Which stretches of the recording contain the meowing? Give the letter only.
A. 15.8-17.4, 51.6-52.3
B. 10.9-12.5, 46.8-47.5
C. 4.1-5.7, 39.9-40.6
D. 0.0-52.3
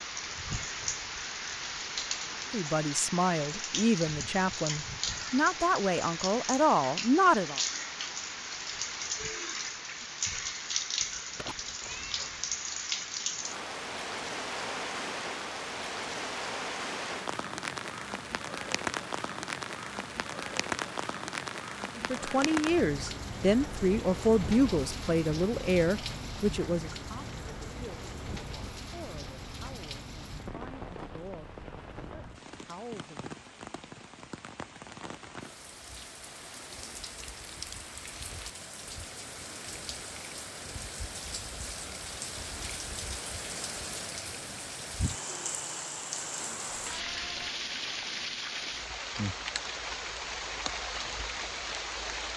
B.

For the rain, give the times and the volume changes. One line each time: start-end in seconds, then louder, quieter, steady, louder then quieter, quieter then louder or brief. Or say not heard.
0.0-52.3 quieter then louder.